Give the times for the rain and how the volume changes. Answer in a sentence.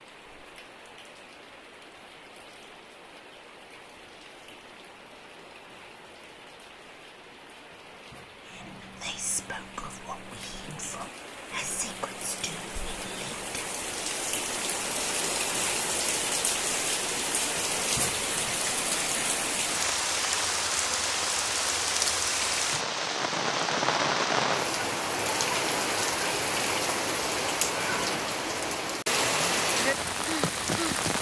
The rain can be heard from 0.0 to 31.1 s, getting louder.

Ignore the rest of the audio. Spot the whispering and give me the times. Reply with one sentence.
You can hear the whispering from 8.4 to 13.8 s.